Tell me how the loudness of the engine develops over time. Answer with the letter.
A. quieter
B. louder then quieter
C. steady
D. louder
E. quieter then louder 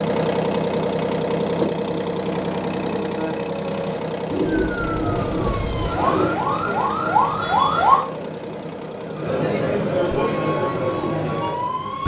A.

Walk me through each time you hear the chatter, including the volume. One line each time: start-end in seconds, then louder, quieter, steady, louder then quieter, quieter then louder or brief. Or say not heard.
5.9-12.0 louder.